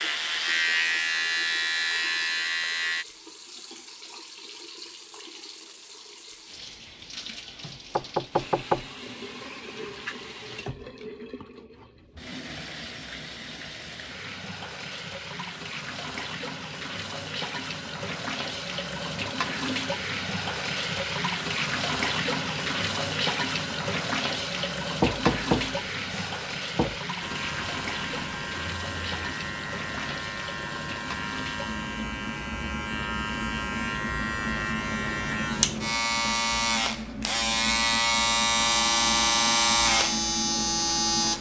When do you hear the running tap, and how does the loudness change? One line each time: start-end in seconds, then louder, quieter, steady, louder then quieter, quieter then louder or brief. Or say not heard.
0.1-41.3 louder then quieter.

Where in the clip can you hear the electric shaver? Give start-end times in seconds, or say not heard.
0.0-3.0, 27.2-41.3.